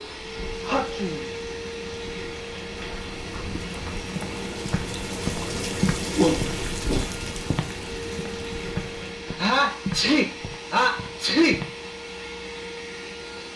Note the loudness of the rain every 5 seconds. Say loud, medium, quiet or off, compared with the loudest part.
medium, loud, off.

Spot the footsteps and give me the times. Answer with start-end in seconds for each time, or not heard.
3.3-11.8.